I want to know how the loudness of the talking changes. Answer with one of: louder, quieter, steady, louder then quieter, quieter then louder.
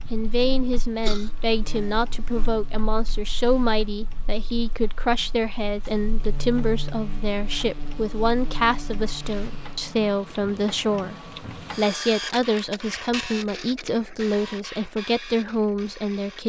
steady.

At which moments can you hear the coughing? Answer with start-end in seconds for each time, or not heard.
0.1-1.3.